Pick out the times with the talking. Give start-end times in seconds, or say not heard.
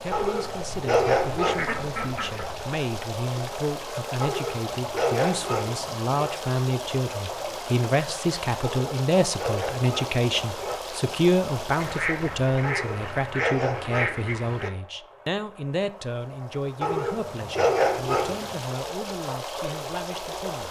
0.0-20.6.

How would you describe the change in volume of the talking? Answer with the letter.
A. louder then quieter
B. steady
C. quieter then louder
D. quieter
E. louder
A.